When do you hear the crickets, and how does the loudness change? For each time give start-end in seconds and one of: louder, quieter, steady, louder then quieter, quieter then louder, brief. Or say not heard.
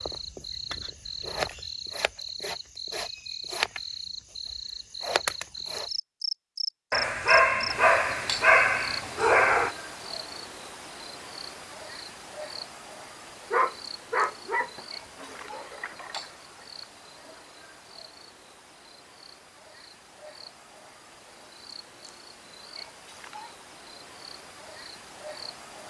0.0-25.8 quieter.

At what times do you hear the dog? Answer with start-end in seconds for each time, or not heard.
6.9-9.8, 13.5-16.2.